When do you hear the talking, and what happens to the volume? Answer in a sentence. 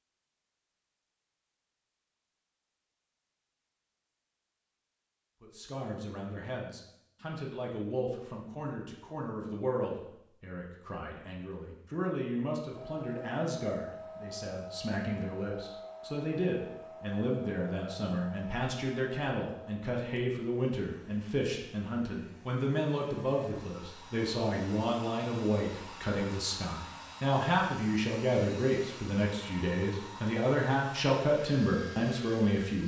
You can hear the talking from 5.4 to 32.8 s, getting louder.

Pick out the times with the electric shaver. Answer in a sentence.
You can't hear the electric shaver here.